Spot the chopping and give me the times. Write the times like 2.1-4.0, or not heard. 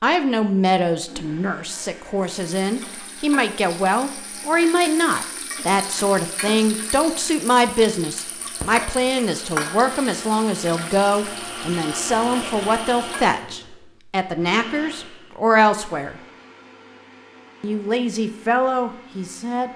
not heard.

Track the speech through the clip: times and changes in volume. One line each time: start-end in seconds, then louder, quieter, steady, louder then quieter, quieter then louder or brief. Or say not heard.
0.0-16.2 steady
17.6-19.7 brief.